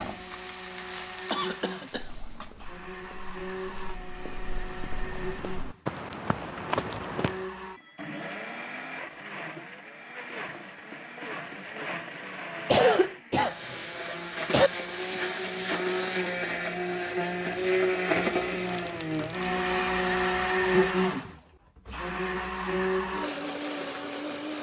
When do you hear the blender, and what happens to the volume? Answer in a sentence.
The blender can be heard from 0.0 to 24.5 s, getting louder.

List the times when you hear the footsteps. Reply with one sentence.
You can hear the footsteps from 1.9 to 7.4 s.